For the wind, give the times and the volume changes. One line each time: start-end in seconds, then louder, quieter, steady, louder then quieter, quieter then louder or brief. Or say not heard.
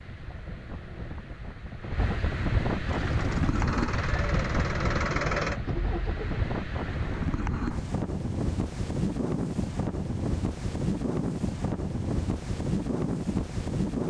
0.0-14.0 steady.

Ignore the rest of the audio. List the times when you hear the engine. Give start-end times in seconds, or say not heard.
2.9-6.5.